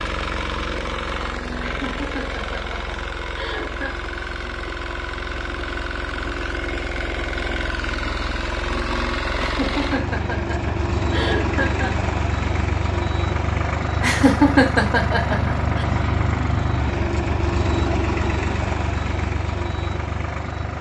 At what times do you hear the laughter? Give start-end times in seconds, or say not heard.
1.6-4.0, 9.3-11.9, 14.0-15.8.